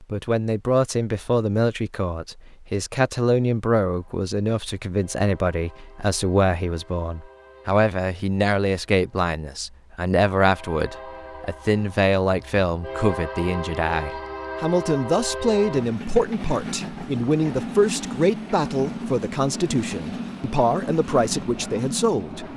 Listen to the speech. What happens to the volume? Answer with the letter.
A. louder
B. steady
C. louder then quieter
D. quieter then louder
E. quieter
B.